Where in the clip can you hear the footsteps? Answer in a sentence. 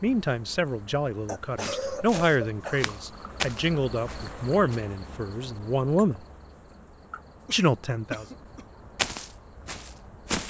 The footsteps can be heard from 1.6 to 4.8 s and from 8.9 to 10.4 s.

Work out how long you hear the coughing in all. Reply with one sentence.
You can hear the coughing for 3 seconds altogether.